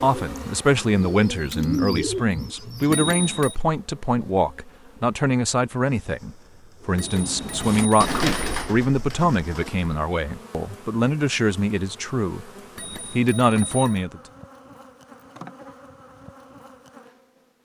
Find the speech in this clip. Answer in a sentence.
You can hear the speech from 0.0 to 12.4 s and from 13.1 to 14.2 s.